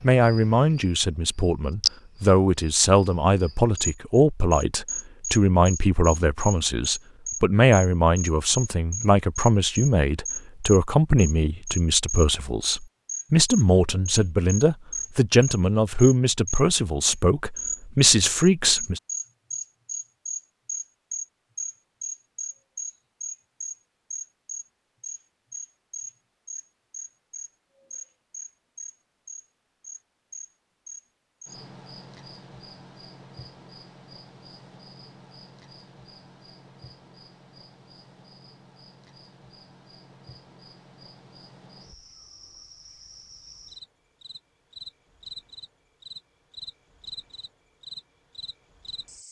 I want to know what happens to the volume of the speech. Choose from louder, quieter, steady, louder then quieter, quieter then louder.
steady.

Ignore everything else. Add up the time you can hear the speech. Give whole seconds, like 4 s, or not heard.
19 s.